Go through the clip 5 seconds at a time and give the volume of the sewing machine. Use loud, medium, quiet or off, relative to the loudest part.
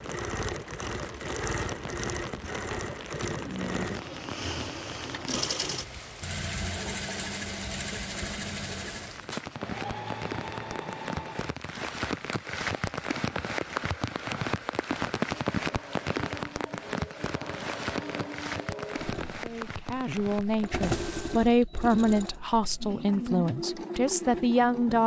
loud, loud, medium, medium, loud.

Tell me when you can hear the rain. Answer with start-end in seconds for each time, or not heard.
0.0-21.4.